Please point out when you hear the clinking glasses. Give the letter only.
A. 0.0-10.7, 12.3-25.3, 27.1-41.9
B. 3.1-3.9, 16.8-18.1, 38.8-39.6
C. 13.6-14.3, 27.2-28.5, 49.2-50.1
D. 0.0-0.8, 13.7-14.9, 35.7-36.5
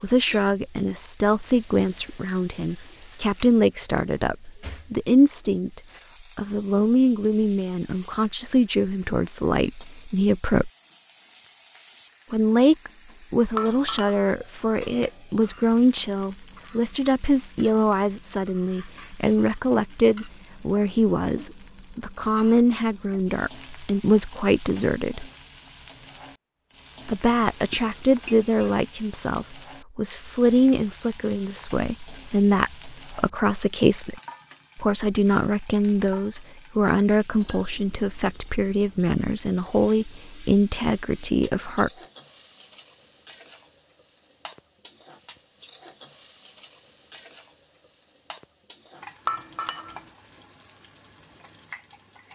C.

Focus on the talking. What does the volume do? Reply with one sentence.
The loudness of the talking stays about the same.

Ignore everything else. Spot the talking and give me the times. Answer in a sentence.
The talking can be heard from 0.0 to 10.7 s, from 12.3 to 25.3 s and from 27.1 to 41.9 s.